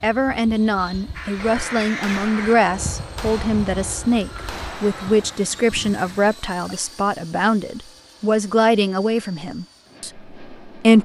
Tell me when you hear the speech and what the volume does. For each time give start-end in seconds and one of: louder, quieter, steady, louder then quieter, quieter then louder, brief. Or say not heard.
0.0-11.0 steady.